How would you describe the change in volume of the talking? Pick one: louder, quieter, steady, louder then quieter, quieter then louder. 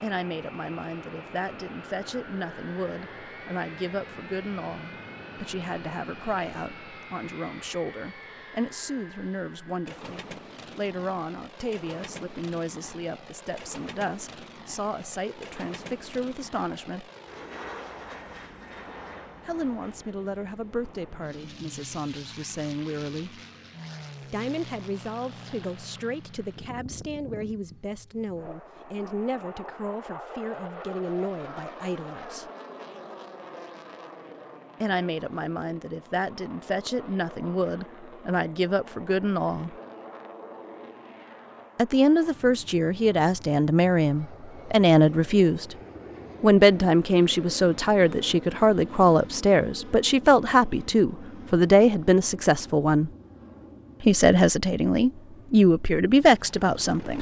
louder.